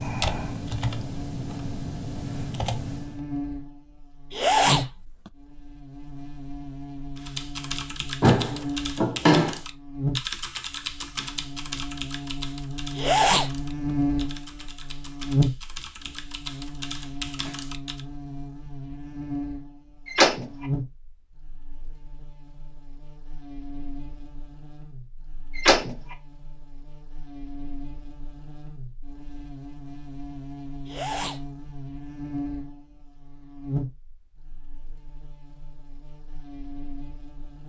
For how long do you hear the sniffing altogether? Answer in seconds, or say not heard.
2 s.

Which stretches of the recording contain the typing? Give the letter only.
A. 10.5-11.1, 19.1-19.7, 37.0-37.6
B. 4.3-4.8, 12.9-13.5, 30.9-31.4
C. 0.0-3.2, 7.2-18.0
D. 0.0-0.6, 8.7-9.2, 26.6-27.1
C.